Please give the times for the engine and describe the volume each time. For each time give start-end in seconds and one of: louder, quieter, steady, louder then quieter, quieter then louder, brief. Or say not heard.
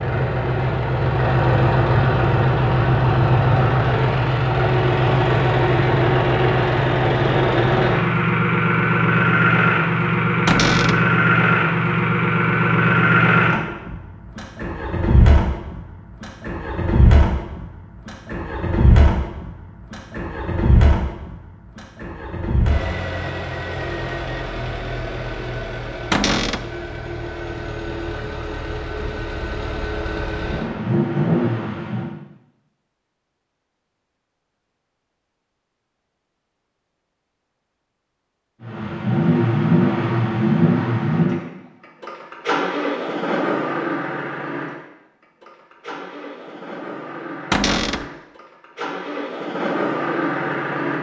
0.0-32.1 quieter
38.6-50.9 quieter then louder.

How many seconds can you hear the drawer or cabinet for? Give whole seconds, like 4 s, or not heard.
2 s.